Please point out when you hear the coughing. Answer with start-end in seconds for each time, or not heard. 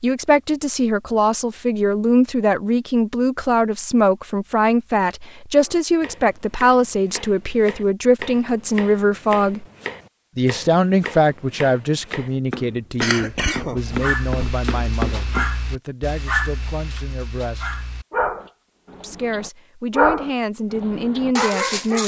13.0-14.6.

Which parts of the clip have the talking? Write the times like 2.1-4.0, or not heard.
0.0-9.7, 10.3-17.8, 19.0-22.0.